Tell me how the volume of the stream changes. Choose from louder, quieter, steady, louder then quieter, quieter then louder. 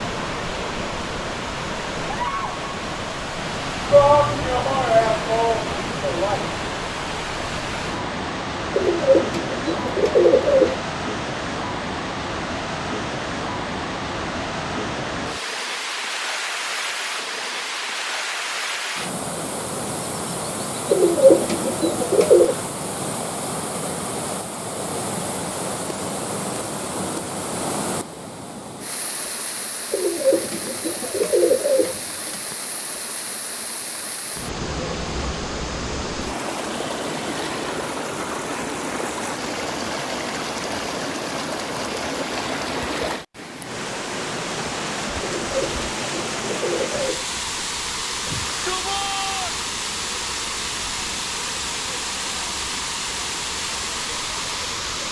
steady.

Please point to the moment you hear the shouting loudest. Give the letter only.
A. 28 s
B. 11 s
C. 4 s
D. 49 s
C.